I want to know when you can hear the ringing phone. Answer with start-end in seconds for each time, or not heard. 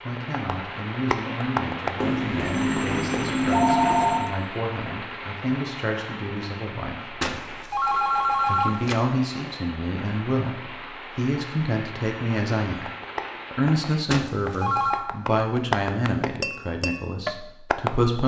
2.0-4.3, 7.2-9.1, 14.1-15.1.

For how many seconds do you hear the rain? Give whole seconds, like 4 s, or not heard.
14 s.